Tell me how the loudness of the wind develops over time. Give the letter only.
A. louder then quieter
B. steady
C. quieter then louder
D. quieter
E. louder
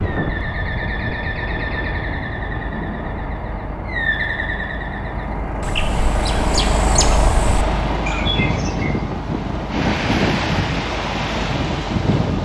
E.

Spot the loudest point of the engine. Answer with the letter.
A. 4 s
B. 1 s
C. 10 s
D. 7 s
D.